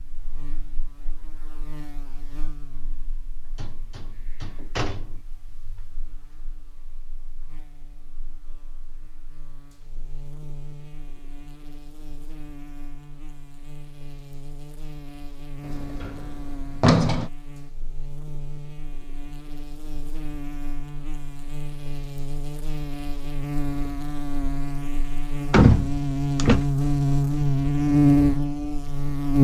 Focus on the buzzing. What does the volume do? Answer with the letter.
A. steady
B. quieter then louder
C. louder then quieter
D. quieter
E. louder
E.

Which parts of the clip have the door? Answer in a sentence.
You can hear the door from 3.5 to 5.2 s, from 15.7 to 17.3 s and from 25.5 to 26.6 s.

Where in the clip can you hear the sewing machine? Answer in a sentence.
You can't hear the sewing machine here.